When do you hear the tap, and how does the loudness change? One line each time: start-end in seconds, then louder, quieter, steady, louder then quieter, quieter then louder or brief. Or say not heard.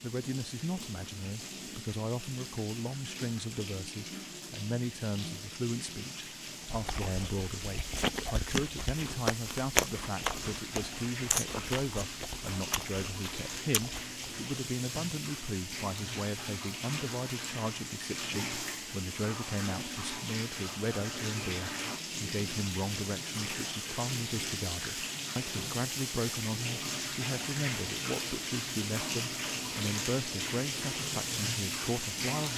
0.0-32.5 louder.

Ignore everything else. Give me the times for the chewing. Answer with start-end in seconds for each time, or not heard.
6.6-14.2.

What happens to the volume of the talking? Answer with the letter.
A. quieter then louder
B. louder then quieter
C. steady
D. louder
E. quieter
C.